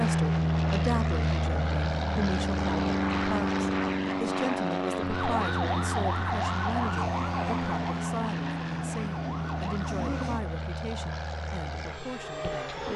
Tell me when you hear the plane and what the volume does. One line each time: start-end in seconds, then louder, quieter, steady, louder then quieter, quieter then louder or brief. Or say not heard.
0.0-12.9 quieter.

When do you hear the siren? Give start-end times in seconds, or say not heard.
5.1-10.4.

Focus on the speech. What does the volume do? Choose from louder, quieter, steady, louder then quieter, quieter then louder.
quieter.